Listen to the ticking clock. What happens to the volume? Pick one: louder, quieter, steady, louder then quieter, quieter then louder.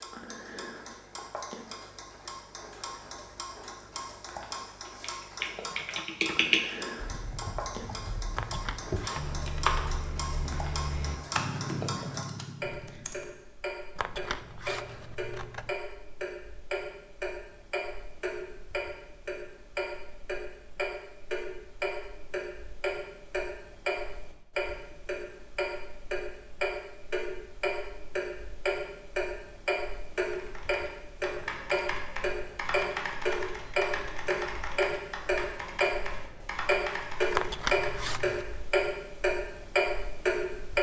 louder.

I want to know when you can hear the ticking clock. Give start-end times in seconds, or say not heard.
0.0-40.7.